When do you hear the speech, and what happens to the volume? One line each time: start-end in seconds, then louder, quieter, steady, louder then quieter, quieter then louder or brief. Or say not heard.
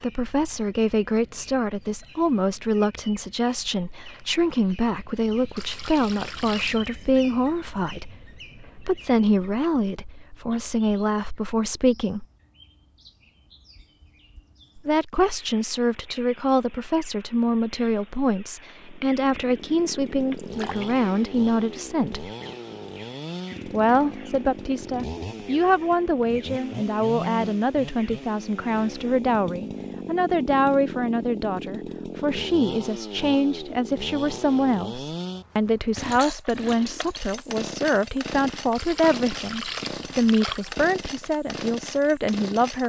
0.0-12.2 steady
14.8-22.3 steady
23.6-42.8 steady.